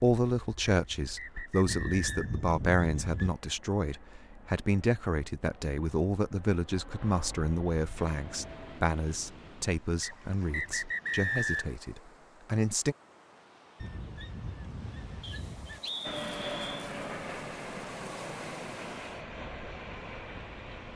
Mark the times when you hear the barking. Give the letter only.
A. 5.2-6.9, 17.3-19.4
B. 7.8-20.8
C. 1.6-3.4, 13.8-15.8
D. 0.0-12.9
C.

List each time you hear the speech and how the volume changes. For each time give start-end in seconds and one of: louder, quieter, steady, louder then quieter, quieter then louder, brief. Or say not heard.
0.0-12.9 quieter.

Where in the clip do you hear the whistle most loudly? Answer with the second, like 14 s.
11 s.